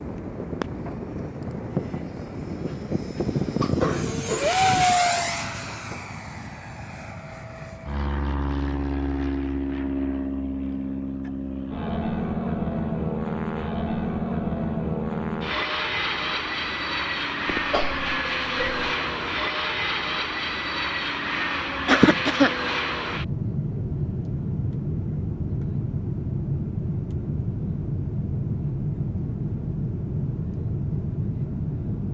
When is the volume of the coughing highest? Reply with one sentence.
The volume of the coughing peaks at 22 seconds.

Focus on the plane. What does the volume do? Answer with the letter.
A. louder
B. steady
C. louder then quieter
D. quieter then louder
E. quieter
B.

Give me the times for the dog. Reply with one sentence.
The dog can't be heard in this clip.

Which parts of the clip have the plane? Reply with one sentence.
You can hear the plane from 0.0 to 32.0 s.